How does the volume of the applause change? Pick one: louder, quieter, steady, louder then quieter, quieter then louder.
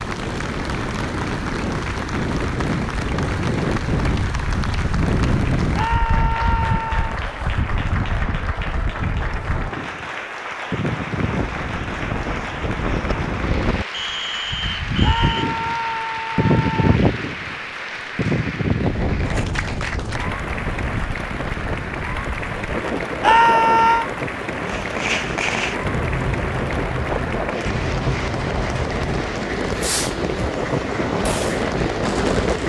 steady.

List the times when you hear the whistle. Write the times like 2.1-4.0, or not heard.
13.9-15.4.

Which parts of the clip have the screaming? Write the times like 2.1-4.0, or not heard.
5.8-7.1, 15.0-16.9, 23.2-24.1.